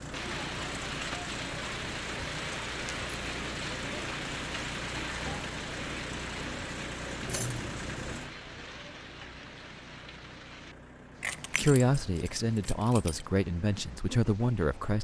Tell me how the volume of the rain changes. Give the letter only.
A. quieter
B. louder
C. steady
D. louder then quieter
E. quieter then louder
A.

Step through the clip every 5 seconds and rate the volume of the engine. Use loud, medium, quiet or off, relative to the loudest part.
loud, loud, medium.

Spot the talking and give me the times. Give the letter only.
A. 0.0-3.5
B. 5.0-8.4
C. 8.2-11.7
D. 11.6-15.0
D.